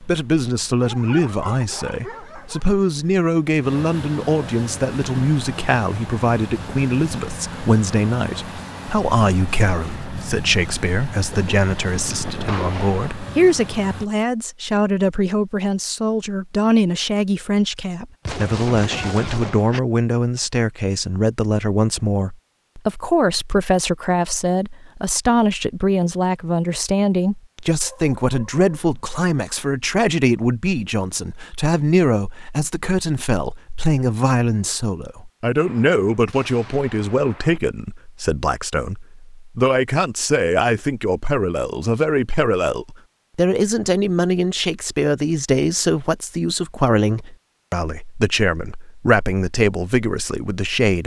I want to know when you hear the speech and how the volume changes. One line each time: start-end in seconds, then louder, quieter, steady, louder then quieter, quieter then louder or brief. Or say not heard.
0.0-51.0 steady.